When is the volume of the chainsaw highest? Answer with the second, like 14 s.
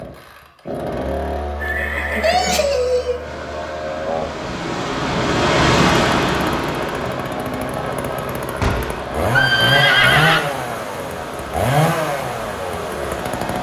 10 s.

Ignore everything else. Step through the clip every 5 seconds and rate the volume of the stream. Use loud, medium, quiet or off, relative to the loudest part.
medium, loud, quiet.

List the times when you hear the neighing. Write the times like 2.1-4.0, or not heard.
1.6-3.2, 8.6-10.4.